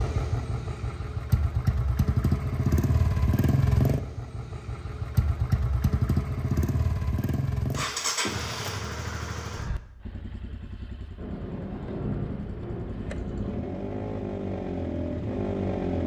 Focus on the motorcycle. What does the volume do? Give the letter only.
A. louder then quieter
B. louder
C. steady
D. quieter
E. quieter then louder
E.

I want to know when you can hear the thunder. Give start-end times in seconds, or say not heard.
11.2-13.8.